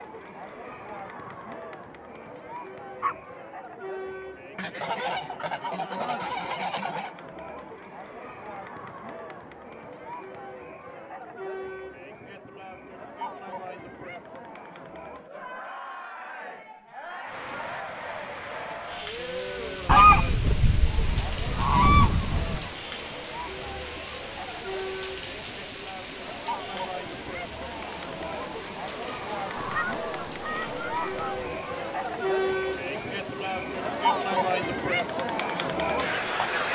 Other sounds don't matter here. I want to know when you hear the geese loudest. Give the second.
20 s.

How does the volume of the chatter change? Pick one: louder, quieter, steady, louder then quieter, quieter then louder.
louder.